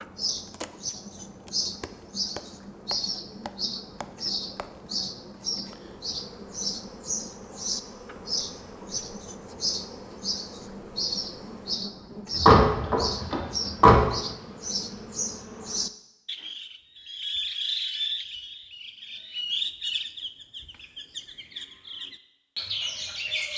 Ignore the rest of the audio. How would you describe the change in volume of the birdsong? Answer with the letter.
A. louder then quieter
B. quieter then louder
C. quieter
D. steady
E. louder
D.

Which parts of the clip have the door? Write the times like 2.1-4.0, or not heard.
12.3-14.0.